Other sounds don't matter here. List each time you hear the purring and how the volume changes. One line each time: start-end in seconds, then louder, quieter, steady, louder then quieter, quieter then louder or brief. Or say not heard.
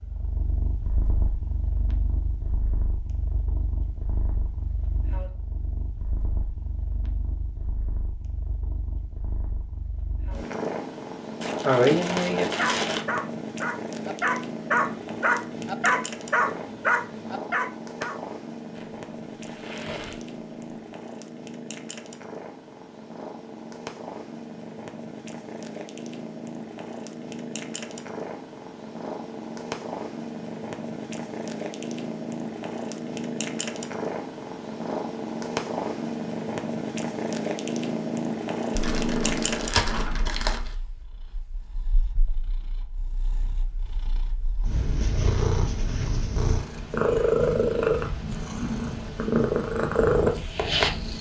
0.0-51.1 louder.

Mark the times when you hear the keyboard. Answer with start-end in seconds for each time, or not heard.
not heard.